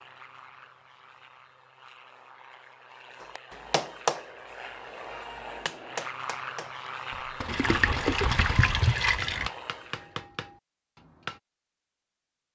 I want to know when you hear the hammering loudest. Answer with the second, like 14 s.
4 s.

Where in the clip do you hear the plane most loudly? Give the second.
8 s.